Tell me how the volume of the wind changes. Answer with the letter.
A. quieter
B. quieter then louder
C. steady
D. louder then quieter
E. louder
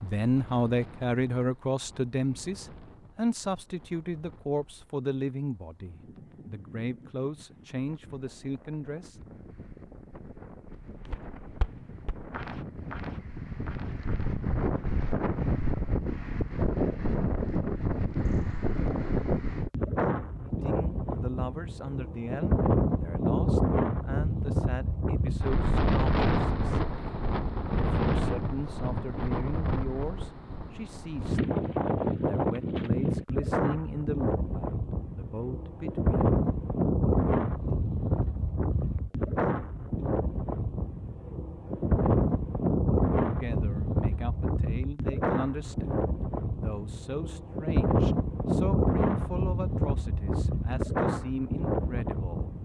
E.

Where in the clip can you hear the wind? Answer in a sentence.
The wind can be heard from 0.0 to 52.5 s.